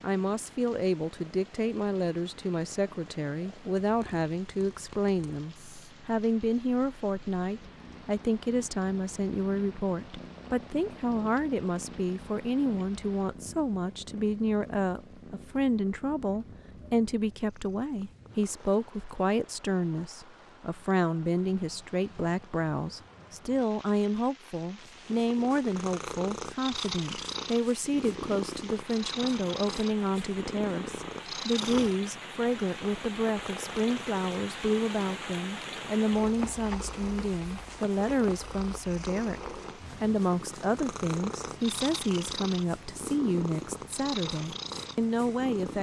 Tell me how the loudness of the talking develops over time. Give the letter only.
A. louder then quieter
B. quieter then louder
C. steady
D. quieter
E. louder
C.